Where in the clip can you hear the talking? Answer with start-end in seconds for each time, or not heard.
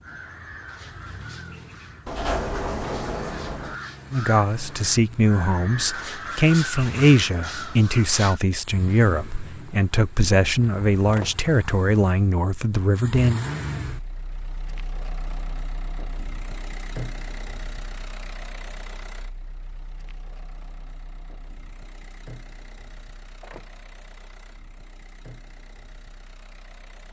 4.1-13.4.